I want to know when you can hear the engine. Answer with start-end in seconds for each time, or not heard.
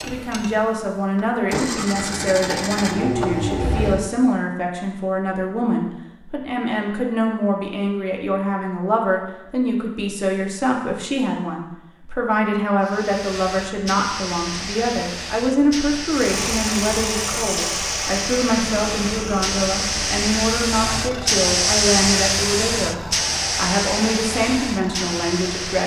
0.0-4.0, 16.1-25.8.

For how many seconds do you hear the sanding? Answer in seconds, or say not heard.
not heard.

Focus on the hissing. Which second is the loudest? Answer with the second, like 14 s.
22 s.